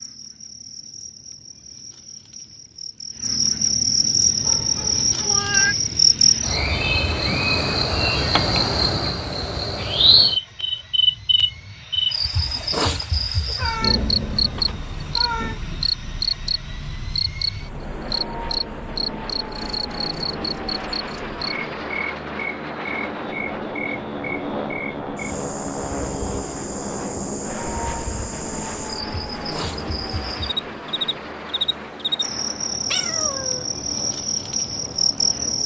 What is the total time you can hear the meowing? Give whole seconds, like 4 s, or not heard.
4 s.